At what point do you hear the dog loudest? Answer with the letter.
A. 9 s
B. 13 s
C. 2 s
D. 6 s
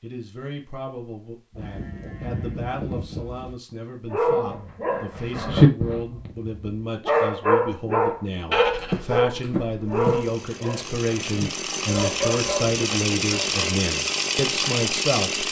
D.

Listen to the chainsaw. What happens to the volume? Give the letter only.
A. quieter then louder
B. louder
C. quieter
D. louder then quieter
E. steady
B.